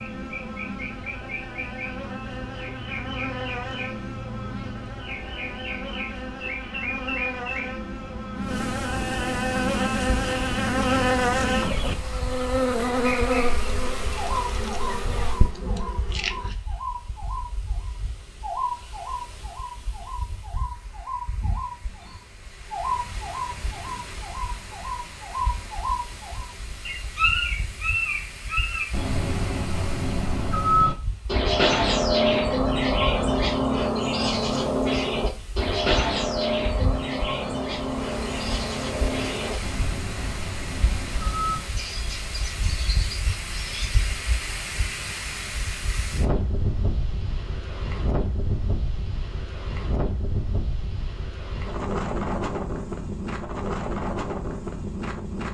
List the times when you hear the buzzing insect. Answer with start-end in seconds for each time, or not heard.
0.0-16.6.